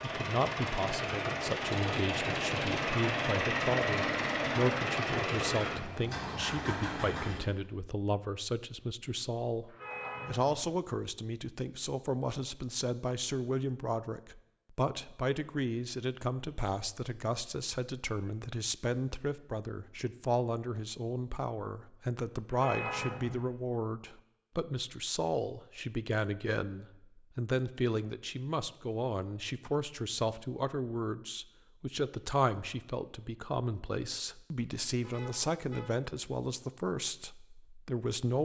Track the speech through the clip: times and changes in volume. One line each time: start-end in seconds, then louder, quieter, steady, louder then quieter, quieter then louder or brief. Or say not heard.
0.0-38.4 steady.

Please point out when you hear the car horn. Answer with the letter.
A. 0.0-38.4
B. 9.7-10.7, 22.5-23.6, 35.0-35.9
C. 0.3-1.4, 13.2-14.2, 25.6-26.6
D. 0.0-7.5
B.